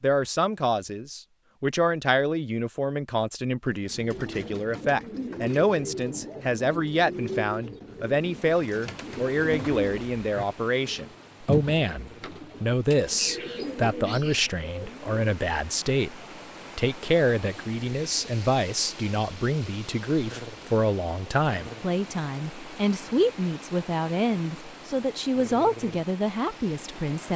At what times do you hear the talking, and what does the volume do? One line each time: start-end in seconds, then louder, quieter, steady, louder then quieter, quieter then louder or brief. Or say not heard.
0.0-27.3 steady.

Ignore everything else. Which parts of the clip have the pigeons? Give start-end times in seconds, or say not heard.
3.6-15.2.